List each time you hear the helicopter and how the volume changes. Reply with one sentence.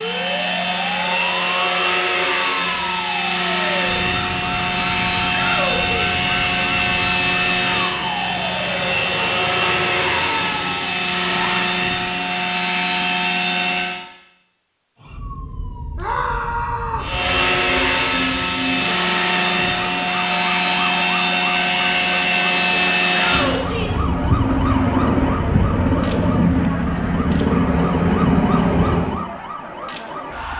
You can hear the helicopter from 0.0 to 14.0 s, at a steady volume; and from 17.0 to 29.2 s, at a steady volume.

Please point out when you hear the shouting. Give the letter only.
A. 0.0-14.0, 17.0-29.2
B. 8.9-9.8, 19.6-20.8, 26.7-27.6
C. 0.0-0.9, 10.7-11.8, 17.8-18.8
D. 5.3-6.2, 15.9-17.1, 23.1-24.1
D.